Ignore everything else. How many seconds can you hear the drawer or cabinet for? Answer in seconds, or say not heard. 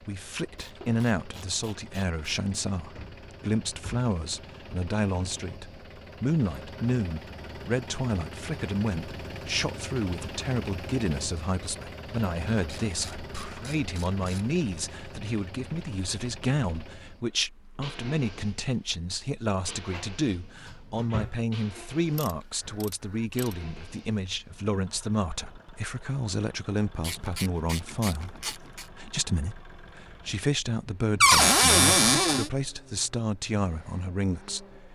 4 s.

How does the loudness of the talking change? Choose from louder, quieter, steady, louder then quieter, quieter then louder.
steady.